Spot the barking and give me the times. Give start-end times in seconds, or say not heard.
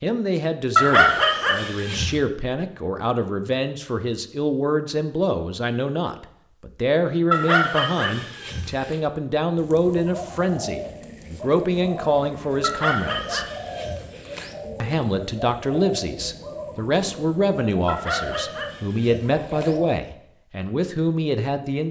0.8-2.1, 7.3-8.9, 12.6-14.5, 17.9-19.8.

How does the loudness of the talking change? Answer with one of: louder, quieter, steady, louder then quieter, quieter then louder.
steady.